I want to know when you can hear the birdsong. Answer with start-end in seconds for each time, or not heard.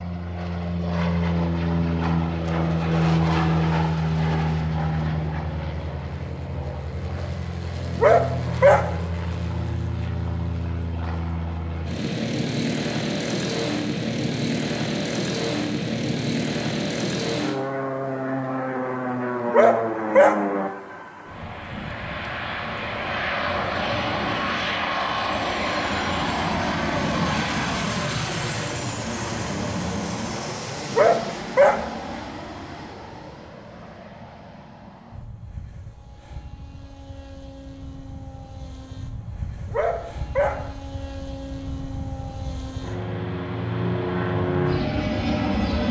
not heard.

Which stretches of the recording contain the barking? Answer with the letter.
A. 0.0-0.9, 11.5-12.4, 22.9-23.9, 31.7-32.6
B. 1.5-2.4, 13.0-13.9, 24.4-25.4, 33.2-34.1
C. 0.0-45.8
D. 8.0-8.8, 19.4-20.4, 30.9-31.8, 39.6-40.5
D.